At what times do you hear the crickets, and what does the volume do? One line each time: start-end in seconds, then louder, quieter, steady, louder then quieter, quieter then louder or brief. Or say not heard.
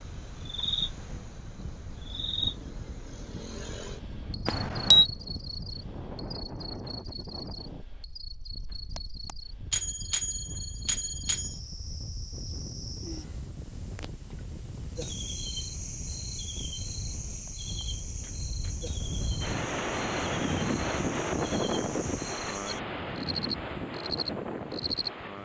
0.0-25.1 quieter then louder.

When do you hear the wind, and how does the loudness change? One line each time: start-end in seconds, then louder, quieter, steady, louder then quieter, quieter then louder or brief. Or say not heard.
0.0-25.3 louder.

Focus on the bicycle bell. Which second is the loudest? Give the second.
5 s.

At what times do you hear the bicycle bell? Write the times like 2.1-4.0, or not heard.
4.5-5.0, 8.9-11.6, 17.4-18.9.